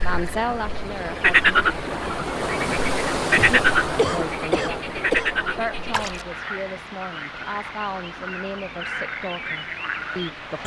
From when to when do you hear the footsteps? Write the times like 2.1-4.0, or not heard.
not heard.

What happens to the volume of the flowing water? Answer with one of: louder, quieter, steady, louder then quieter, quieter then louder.
louder then quieter.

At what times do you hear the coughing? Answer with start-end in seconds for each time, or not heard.
3.4-5.3.